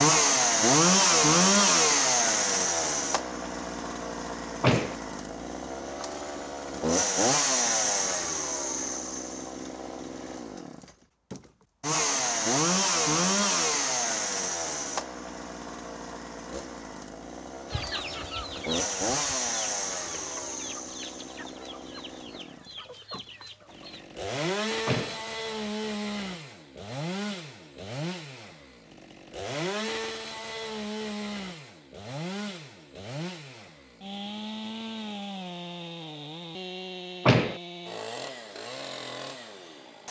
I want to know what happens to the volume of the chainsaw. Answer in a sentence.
The volume of the chainsaw goes down.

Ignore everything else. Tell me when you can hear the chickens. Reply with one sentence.
You can hear the chickens from 17.6 to 24.1 s.